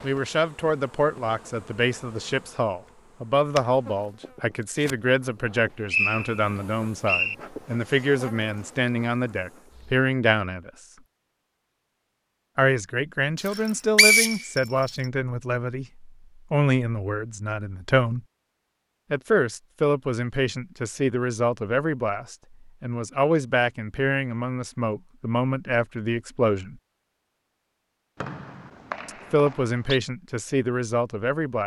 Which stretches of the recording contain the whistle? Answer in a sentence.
The whistle can be heard from 5.5 to 7.3 s, from 13.6 to 14.6 s and from 28.2 to 30.0 s.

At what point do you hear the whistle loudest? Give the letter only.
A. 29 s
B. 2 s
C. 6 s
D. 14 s
D.